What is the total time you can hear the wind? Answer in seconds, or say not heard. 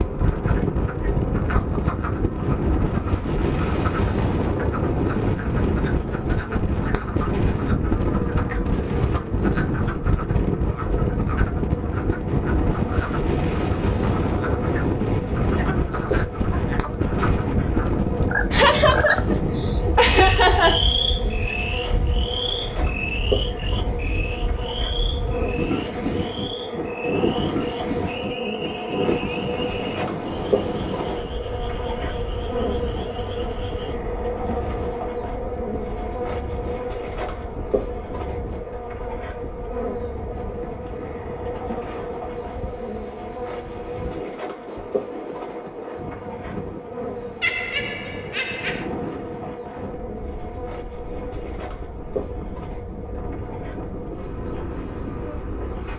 56 s.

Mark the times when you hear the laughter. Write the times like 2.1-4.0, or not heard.
18.5-20.8, 47.4-48.9.